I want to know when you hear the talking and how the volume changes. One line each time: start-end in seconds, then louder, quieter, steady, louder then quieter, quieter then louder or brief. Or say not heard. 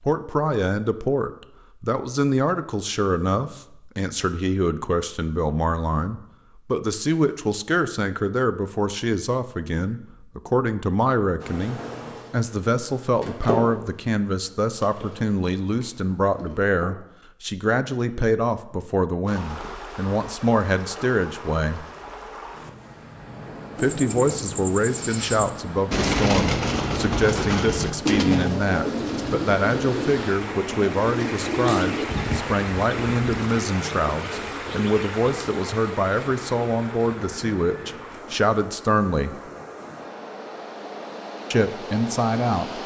0.1-21.9 steady
23.8-39.4 steady
41.5-42.8 brief.